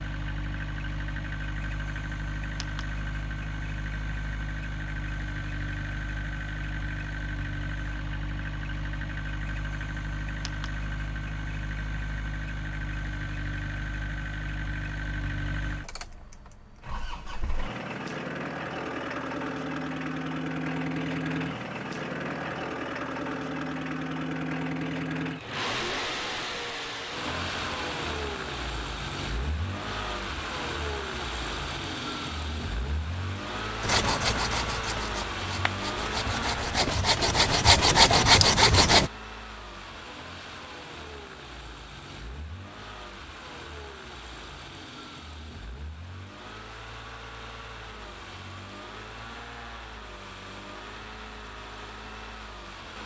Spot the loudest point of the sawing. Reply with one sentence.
The loudest moment of the sawing is at 38 seconds.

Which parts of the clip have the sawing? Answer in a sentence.
You can hear the sawing from 33.8 to 39.1 s.